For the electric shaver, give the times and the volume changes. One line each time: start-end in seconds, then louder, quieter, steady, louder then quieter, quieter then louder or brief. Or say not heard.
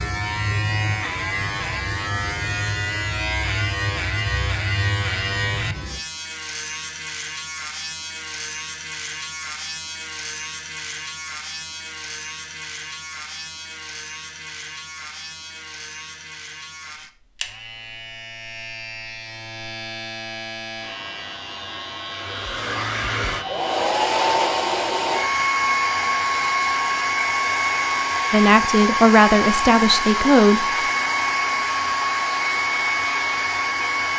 0.0-34.1 quieter.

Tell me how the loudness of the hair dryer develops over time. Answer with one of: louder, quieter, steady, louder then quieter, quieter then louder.
steady.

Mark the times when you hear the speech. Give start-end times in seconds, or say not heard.
28.3-30.6.